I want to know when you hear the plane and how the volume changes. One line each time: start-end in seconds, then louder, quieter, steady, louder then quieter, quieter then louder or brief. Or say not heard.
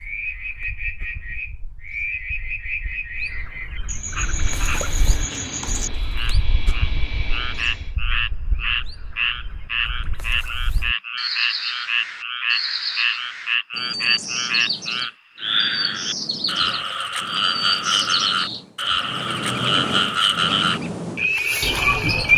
4.0-8.0 steady.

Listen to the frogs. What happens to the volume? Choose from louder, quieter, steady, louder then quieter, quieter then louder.
louder.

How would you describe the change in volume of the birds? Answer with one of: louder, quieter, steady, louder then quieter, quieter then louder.
louder.